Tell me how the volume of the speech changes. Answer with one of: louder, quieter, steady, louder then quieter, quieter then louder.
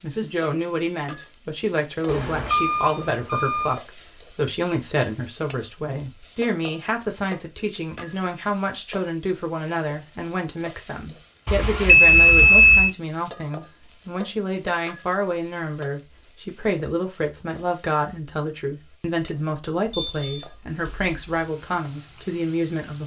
steady.